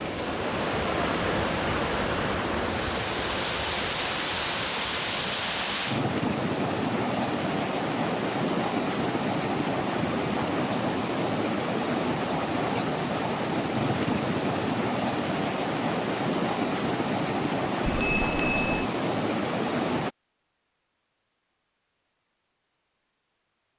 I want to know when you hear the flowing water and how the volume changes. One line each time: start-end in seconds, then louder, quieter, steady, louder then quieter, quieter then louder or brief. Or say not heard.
0.0-20.1 steady.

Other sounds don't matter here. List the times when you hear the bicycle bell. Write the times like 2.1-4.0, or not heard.
17.9-18.9.